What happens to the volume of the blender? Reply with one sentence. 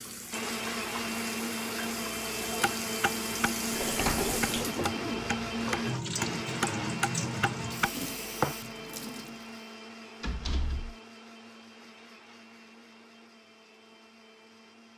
The volume of the blender goes down.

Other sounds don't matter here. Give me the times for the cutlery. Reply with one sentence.
The cutlery can't be heard in this clip.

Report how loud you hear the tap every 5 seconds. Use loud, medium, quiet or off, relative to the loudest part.
loud, loud, off.